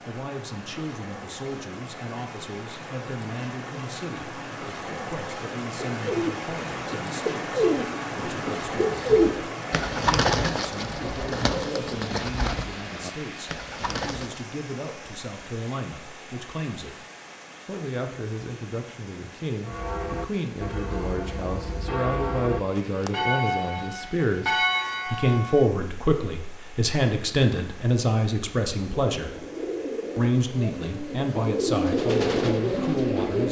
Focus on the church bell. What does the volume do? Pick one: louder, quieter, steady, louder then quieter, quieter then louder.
louder.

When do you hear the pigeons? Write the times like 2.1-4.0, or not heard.
6.0-14.4, 28.9-33.4.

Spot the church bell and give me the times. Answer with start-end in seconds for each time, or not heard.
19.6-25.6.